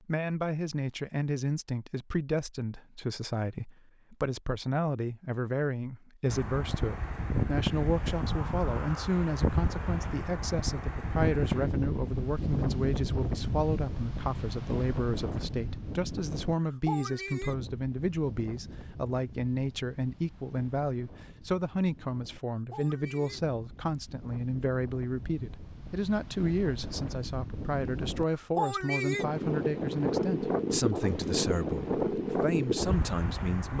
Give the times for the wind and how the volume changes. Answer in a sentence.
The wind can be heard from 6.2 to 33.7 s, getting quieter then louder.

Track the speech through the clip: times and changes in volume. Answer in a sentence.
You can hear the speech from 0.1 to 33.7 s, at a steady volume.